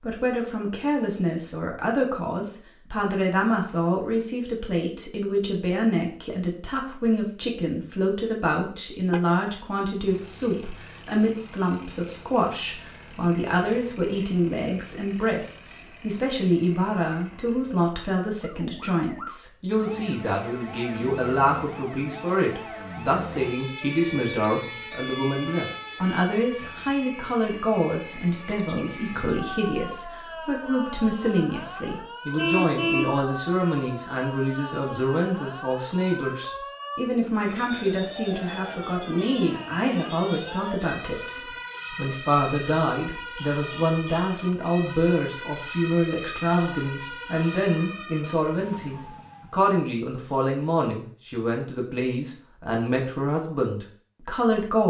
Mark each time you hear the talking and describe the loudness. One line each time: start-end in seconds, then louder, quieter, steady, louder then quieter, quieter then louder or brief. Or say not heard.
0.0-54.8 steady.